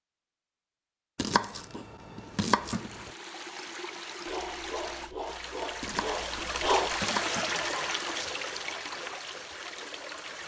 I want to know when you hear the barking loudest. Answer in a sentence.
The volume of the barking peaks at 7 seconds.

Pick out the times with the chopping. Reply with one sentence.
You can hear the chopping from 1.1 to 3.1 s and from 5.8 to 7.6 s.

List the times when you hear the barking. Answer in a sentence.
You can hear the barking from 4.2 to 8.0 s.